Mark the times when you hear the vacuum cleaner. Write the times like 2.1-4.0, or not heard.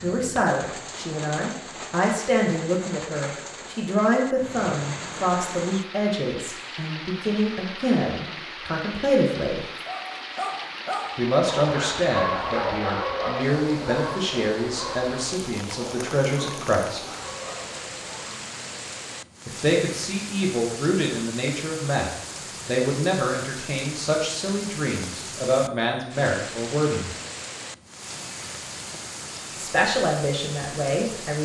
not heard.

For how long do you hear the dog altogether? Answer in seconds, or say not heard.
9 s.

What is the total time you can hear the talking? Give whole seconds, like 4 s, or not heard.
25 s.